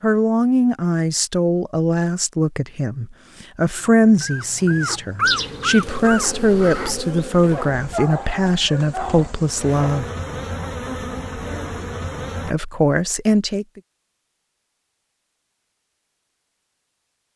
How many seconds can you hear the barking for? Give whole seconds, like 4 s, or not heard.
6 s.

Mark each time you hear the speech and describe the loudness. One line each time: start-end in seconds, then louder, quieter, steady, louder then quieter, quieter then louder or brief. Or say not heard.
0.0-10.1 steady
12.4-13.8 brief.